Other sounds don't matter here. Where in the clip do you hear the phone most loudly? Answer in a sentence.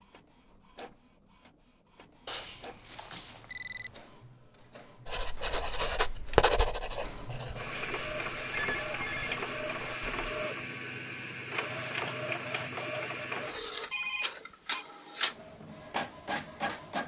The loudest moment of the phone is at 14 seconds.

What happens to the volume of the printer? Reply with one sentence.
The volume of the printer goes up.